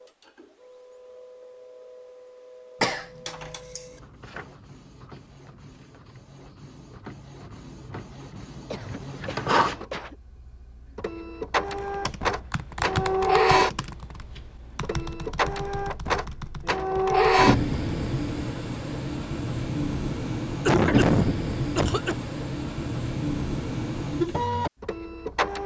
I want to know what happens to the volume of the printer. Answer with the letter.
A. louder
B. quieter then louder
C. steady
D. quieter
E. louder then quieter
A.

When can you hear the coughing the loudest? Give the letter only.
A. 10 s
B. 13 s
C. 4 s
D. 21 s
D.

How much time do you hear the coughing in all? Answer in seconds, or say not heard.
4 s.